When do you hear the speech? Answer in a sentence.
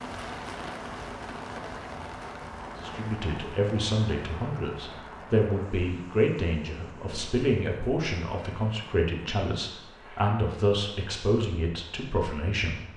You can hear the speech from 2.8 to 12.8 s.